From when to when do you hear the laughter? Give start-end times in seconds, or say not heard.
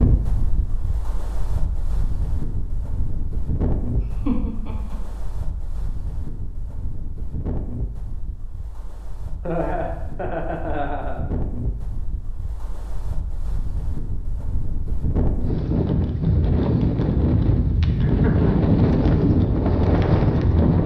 4.0-5.0, 9.4-11.2, 17.8-18.6.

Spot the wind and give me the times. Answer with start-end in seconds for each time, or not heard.
0.0-20.8.